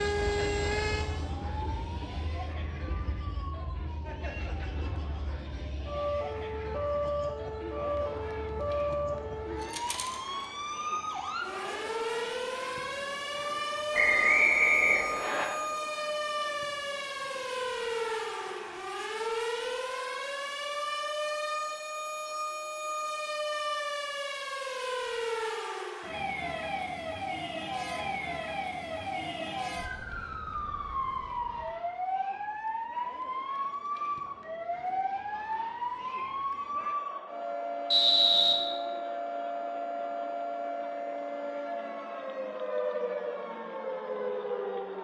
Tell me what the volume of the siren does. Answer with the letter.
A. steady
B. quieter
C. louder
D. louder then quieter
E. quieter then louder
A.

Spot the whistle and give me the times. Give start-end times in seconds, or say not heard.
13.9-15.4, 37.9-38.5.